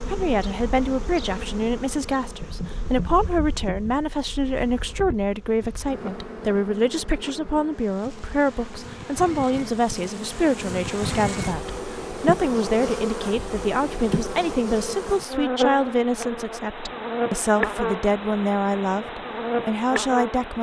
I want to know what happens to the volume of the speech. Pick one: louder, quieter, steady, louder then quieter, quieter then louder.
steady.